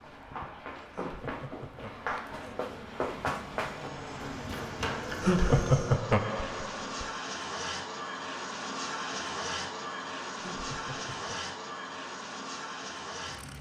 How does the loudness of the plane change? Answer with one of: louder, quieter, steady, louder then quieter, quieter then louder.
louder.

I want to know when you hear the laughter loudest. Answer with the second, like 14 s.
6 s.